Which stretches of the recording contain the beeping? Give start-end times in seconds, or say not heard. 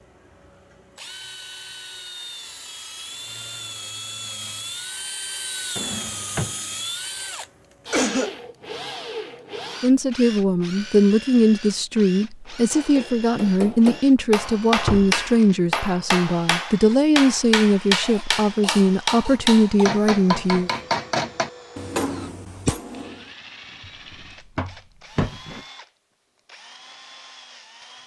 not heard.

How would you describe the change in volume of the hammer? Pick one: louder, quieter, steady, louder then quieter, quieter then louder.
steady.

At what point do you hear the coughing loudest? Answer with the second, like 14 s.
8 s.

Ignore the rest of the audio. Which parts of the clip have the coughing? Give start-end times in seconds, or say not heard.
7.9-8.3, 18.0-19.9.